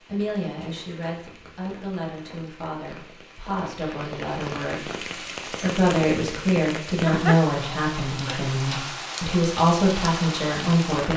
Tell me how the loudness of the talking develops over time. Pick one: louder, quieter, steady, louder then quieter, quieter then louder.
louder.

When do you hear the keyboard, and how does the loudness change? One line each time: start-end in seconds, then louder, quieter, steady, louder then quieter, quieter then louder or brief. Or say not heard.
not heard.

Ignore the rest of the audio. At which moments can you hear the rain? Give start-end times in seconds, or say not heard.
0.0-11.1.